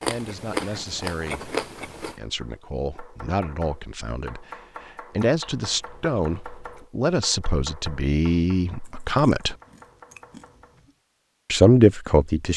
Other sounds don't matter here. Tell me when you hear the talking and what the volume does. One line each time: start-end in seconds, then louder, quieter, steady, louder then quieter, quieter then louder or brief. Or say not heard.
0.1-9.6 louder
11.5-12.5 brief.